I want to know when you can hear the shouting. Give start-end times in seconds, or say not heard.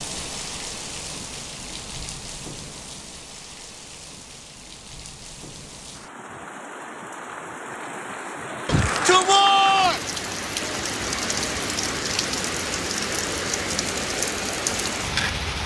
8.7-10.1.